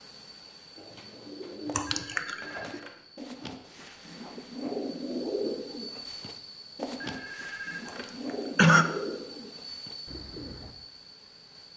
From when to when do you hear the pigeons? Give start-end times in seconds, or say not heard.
0.8-10.8.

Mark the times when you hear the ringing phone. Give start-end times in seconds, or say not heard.
1.6-3.0, 6.8-8.2.